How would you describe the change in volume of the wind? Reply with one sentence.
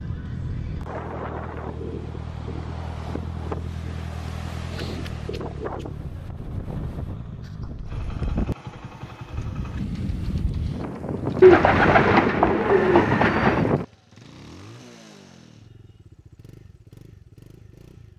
The loudness of the wind goes up.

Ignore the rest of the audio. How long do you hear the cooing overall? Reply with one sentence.
The cooing can be heard for 2 seconds in total.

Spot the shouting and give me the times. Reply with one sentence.
You can't hear the shouting here.